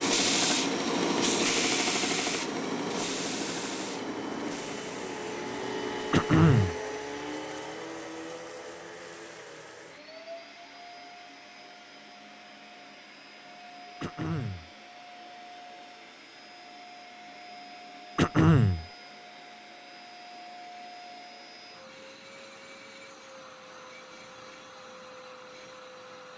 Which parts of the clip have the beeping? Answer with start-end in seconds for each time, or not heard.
not heard.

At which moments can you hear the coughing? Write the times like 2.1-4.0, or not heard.
6.1-6.8, 14.0-14.7, 18.1-18.9.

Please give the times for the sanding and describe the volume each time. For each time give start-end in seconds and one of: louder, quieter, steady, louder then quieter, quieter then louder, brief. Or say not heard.
0.0-6.8 quieter.